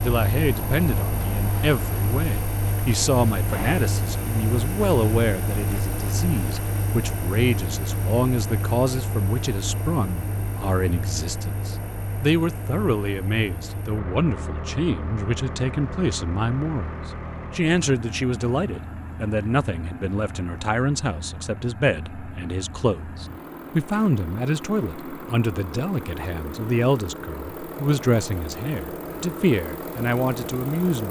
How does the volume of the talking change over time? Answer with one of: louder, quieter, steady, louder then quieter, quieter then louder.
steady.